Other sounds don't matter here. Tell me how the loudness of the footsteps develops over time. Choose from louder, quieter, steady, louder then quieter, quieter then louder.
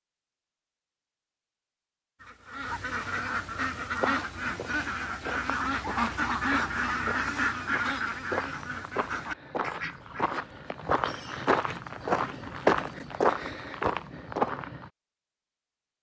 louder.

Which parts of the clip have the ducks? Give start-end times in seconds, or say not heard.
2.1-10.3.